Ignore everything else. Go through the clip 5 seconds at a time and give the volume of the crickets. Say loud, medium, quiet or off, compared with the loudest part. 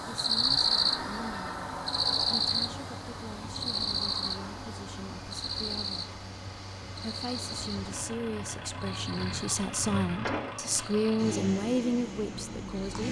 loud, medium, quiet.